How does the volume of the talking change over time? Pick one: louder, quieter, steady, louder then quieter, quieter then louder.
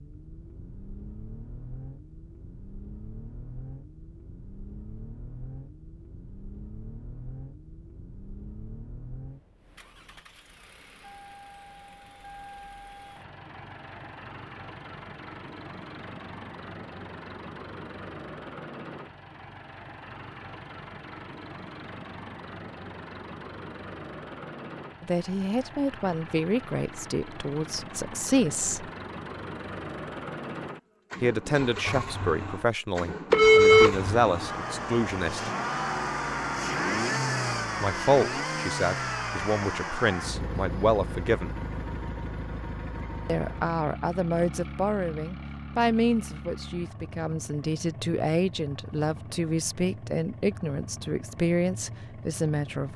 steady.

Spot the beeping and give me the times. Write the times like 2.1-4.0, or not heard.
33.3-34.0.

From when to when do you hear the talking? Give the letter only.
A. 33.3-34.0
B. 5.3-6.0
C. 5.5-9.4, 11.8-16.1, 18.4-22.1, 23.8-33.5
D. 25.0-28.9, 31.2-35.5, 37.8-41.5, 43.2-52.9
D.